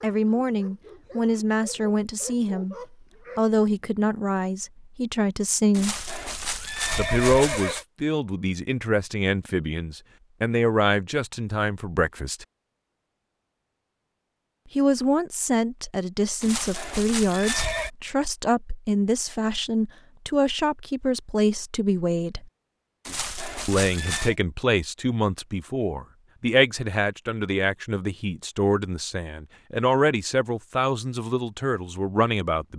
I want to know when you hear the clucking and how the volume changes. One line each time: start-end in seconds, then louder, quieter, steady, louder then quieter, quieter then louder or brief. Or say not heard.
not heard.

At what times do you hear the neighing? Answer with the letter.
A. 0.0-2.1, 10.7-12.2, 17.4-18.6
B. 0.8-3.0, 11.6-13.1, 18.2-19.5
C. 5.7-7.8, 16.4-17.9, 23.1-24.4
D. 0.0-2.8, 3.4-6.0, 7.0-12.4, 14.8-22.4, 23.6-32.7
C.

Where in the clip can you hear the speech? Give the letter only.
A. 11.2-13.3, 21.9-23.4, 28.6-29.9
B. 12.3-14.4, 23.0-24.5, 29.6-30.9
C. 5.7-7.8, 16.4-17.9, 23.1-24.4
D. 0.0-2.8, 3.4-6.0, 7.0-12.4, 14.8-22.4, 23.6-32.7
D.